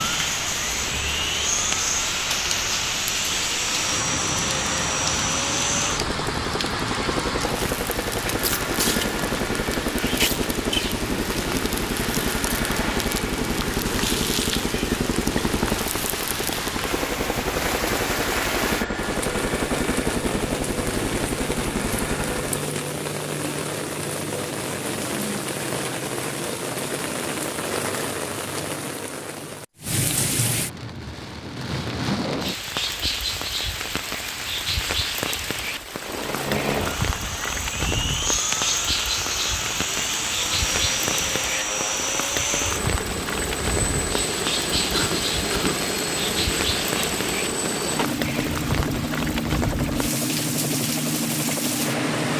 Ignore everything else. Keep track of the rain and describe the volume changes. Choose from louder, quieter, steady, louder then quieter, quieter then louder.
steady.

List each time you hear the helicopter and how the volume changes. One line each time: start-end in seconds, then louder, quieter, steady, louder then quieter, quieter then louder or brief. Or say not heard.
0.0-22.6 steady
36.0-52.3 steady.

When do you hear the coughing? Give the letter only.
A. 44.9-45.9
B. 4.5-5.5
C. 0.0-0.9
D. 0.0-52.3
A.